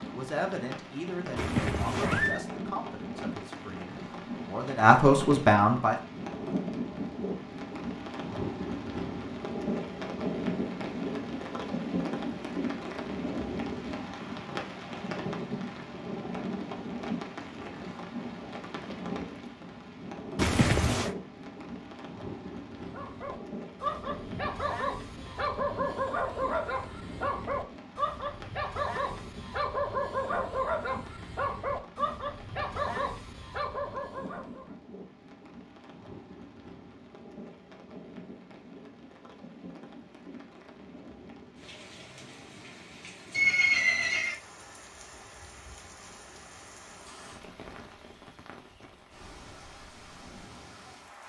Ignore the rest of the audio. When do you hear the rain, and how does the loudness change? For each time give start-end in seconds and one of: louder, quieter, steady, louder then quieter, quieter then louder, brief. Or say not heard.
0.0-51.2 quieter.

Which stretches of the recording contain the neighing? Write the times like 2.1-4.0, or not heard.
1.4-2.4, 20.4-21.1, 43.3-44.4.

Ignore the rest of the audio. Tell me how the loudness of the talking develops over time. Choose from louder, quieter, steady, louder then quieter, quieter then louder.
quieter then louder.